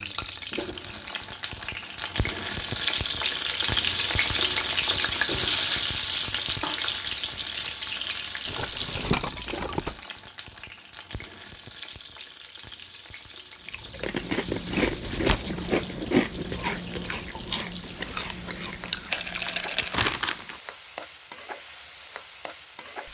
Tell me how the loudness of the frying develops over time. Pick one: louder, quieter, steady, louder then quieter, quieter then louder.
quieter.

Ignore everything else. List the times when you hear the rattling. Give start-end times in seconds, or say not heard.
8.4-10.0, 19.1-20.0.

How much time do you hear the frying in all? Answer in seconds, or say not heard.
23 s.